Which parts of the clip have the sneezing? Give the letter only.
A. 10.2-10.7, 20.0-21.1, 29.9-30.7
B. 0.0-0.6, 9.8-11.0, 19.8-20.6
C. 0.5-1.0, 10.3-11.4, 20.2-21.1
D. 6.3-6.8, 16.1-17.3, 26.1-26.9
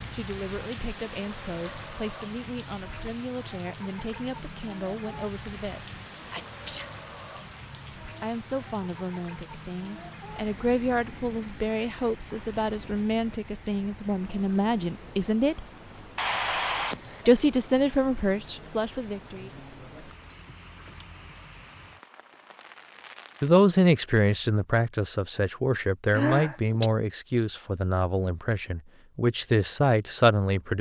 D.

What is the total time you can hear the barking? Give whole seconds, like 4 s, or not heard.
not heard.